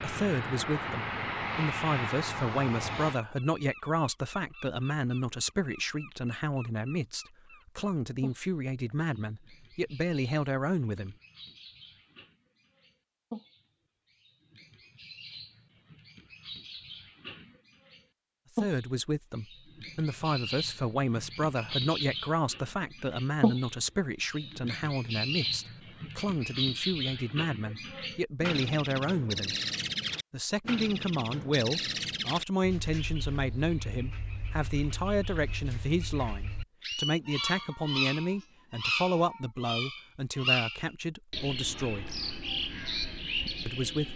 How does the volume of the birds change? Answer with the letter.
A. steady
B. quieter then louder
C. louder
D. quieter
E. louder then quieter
C.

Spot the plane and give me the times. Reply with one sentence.
The plane can be heard from 0.0 to 3.2 s.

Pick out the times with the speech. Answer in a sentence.
The speech can be heard from 0.0 to 11.2 s, from 18.6 to 29.6 s, from 30.3 to 42.2 s and from 43.6 to 44.1 s.